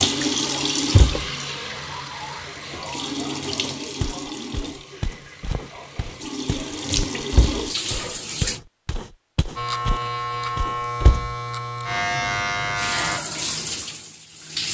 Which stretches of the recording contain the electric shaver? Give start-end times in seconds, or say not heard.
9.6-13.2.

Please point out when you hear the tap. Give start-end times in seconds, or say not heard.
0.0-8.6, 12.8-14.6.